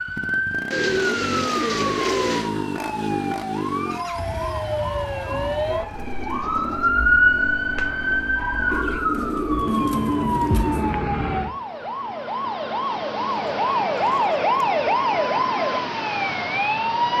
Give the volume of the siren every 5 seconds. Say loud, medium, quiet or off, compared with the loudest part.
medium, loud, loud, loud.